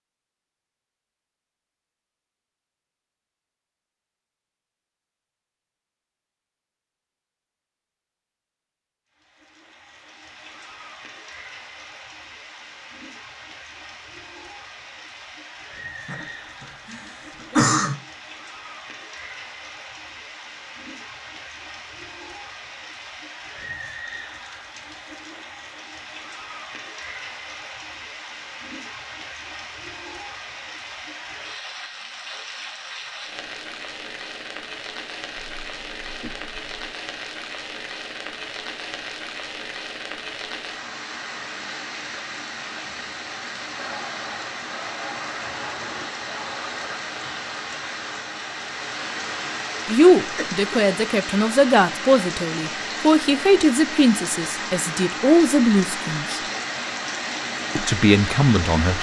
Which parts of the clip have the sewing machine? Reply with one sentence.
The sewing machine can be heard from 43.8 to 47.0 s.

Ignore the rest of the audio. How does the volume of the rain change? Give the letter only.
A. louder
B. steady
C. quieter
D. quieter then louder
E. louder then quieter
A.